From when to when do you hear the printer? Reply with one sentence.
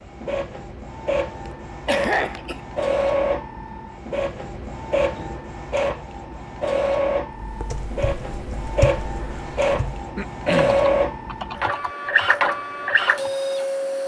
The printer can be heard from 0.0 to 14.0 s.